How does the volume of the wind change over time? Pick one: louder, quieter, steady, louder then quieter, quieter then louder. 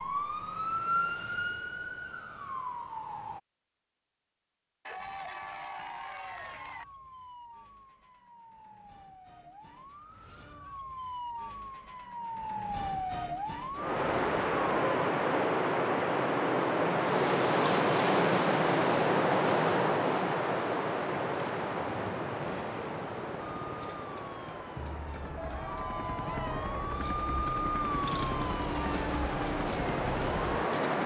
quieter then louder.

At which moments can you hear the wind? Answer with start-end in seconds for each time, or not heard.
13.8-31.0.